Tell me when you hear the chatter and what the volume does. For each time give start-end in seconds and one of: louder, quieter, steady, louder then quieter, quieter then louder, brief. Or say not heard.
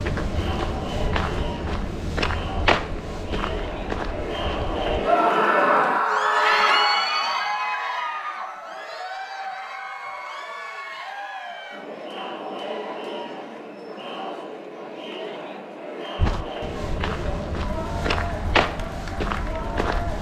0.0-20.1 louder then quieter.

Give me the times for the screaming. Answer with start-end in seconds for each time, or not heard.
5.0-7.0.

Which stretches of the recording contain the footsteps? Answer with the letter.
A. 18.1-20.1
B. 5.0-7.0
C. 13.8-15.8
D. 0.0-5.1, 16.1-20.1
D.